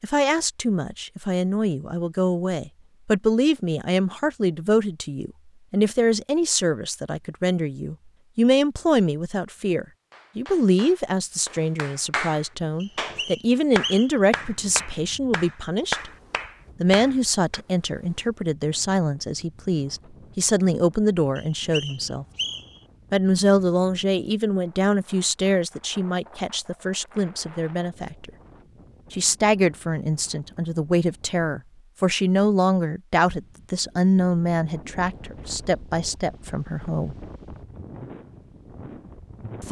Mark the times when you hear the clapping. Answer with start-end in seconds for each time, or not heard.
10.1-17.6.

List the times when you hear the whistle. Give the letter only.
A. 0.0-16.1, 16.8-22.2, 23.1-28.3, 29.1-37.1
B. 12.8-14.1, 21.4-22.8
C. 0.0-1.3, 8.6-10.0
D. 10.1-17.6
B.